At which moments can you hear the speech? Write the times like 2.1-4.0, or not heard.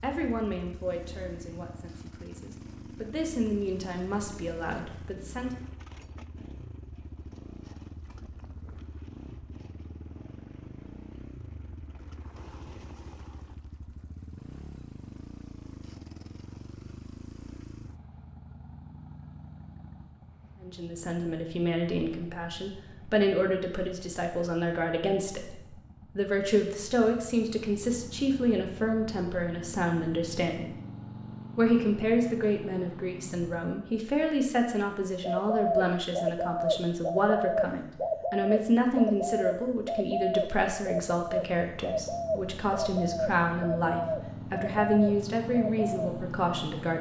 0.0-5.5, 20.6-30.8, 31.6-46.9.